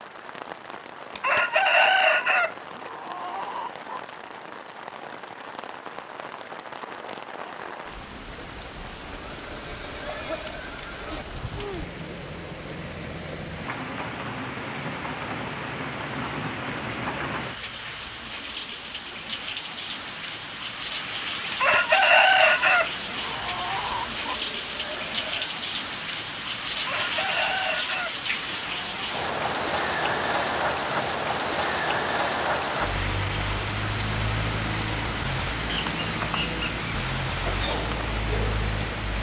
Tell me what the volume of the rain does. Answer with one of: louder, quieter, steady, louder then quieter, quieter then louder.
louder.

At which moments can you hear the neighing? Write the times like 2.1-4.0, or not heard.
9.2-11.2, 24.2-25.6.